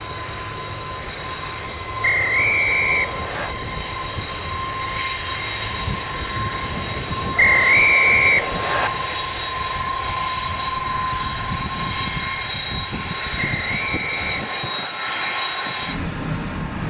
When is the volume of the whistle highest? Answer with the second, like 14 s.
8 s.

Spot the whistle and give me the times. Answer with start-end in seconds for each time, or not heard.
2.0-3.5, 7.3-8.9, 13.3-14.9.